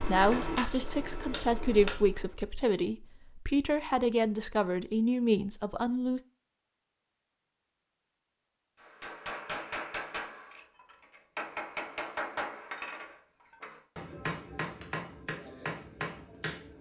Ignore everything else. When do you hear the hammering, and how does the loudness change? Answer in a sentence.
The hammering can be heard briefly from 0.0 to 2.5 s; and from 8.8 to 16.7 s, at a steady volume.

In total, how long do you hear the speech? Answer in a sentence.
The speech can be heard for 6 seconds in total.